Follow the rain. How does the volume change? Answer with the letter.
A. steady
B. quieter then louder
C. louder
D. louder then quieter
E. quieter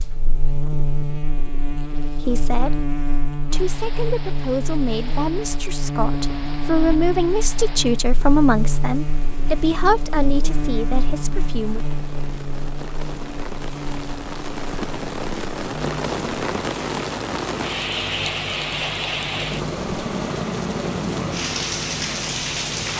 C.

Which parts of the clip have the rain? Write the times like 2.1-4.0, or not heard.
3.5-22.9.